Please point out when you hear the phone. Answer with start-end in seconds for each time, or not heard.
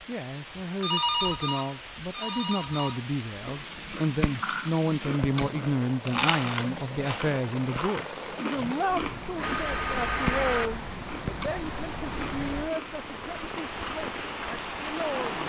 0.8-3.0, 9.4-10.7.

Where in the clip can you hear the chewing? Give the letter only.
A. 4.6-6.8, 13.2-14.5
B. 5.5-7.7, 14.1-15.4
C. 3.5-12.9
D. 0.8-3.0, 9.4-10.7
C.